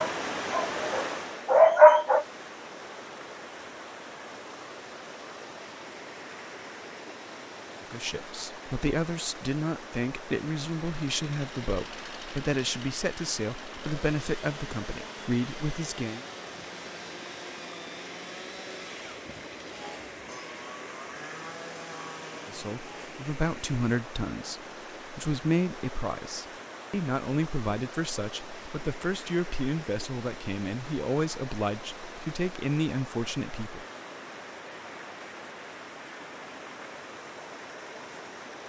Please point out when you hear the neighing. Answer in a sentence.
You can't hear the neighing here.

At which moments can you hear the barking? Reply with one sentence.
The barking can be heard from 0.0 to 2.2 s.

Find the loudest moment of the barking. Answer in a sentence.
The volume of the barking peaks at 2 seconds.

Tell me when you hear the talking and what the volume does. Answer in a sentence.
The talking can be heard from 7.8 to 16.2 s, at a steady volume; and from 22.4 to 33.9 s, at a steady volume.